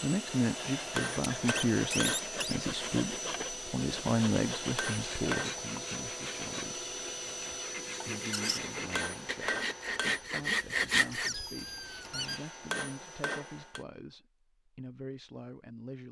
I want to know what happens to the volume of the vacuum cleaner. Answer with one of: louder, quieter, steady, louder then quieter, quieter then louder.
quieter.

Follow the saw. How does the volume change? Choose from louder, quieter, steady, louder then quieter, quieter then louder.
louder.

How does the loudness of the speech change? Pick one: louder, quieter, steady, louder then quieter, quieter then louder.
quieter.